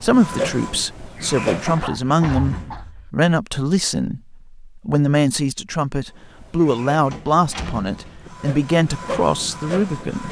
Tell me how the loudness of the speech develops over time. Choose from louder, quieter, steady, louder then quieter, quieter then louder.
steady.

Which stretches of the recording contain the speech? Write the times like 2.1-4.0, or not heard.
0.0-10.2.